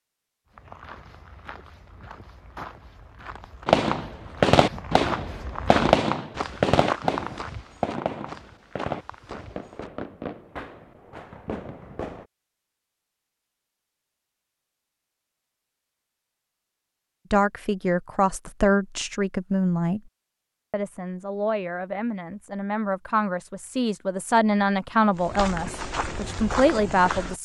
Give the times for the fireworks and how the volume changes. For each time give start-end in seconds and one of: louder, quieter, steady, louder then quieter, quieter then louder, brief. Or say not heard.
3.6-12.2 quieter.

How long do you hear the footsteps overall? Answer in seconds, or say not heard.
12 s.